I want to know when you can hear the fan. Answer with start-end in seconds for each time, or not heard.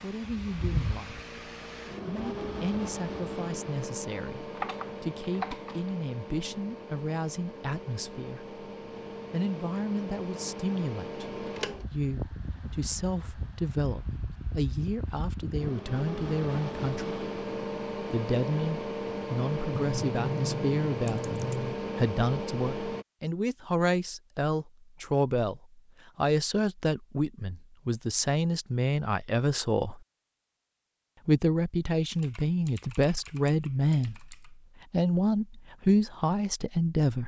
0.0-23.1.